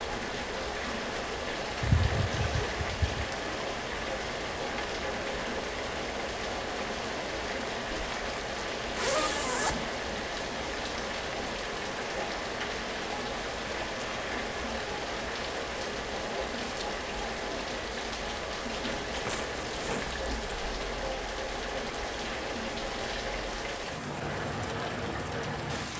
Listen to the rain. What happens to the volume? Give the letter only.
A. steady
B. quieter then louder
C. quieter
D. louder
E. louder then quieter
A.